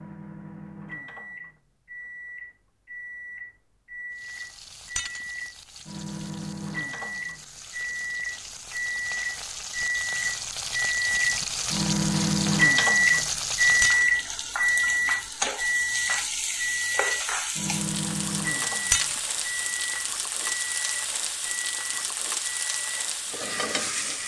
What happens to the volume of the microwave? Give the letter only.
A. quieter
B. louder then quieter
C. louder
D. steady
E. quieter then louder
B.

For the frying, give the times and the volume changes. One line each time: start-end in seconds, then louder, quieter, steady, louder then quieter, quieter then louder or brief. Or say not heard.
4.1-24.2 louder.